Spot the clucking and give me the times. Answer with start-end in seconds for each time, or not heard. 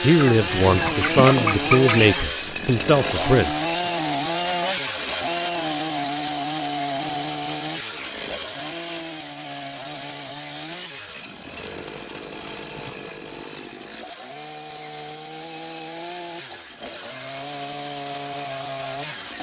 0.1-2.0.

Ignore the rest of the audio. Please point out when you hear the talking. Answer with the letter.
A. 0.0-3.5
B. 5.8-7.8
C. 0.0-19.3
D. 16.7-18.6
A.